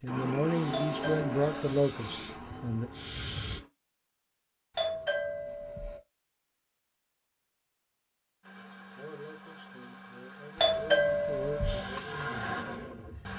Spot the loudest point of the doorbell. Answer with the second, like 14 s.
11 s.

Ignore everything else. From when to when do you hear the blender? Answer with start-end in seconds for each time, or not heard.
0.0-3.7, 8.4-13.3.